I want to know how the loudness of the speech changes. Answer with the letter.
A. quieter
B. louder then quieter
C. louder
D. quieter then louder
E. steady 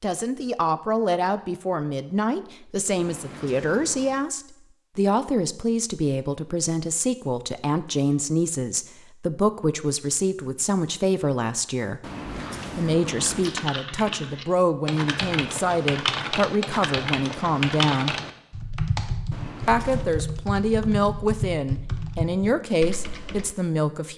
E.